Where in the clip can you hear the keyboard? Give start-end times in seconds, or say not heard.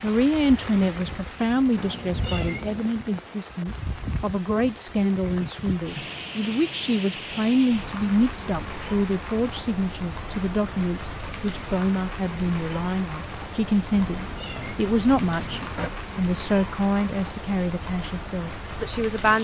not heard.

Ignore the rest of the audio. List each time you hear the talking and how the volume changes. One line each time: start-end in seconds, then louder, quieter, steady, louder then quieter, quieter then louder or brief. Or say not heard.
0.0-19.3 steady.